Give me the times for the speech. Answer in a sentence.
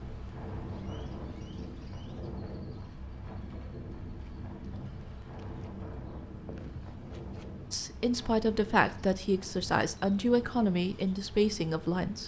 The speech can be heard from 7.7 to 12.2 s.